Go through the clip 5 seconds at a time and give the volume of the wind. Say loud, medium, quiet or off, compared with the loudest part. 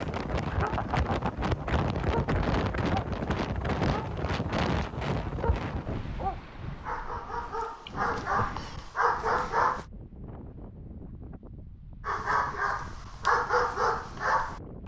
loud, medium, quiet.